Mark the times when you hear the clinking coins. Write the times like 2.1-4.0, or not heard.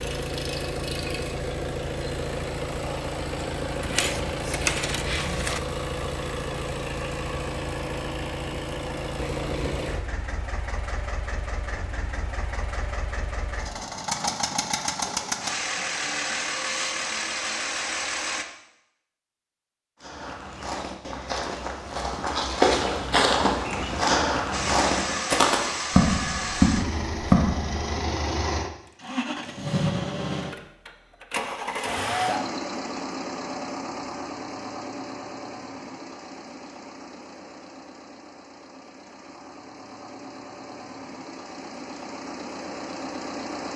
3.8-5.6.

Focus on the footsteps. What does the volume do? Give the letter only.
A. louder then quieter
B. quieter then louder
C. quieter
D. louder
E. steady
D.